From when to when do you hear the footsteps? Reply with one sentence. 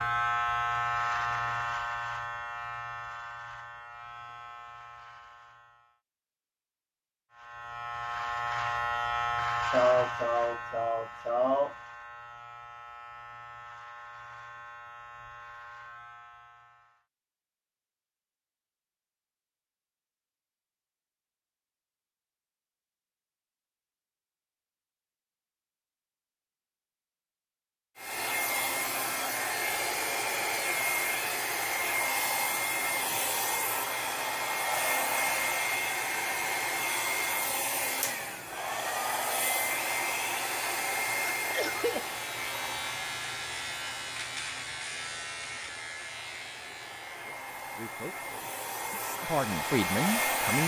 You can't hear the footsteps here.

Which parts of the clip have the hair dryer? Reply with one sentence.
The hair dryer can be heard from 27.9 to 50.6 s.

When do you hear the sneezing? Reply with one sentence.
You can hear the sneezing from 9.7 to 11.8 s and from 41.5 to 42.0 s.